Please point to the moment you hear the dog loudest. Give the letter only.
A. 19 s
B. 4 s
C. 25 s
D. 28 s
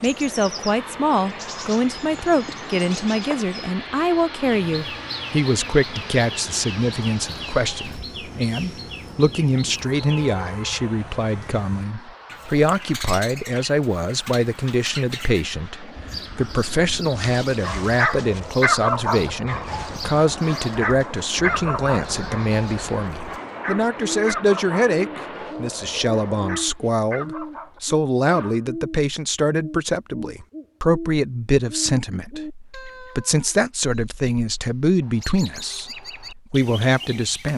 A.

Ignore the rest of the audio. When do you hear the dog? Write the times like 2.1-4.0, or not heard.
17.1-28.6.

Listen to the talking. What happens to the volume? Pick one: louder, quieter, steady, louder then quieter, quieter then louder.
steady.